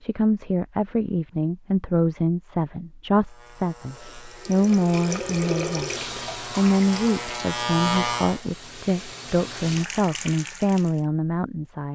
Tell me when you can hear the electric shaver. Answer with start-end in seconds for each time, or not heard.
3.1-8.4.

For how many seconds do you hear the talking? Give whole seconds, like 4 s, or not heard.
12 s.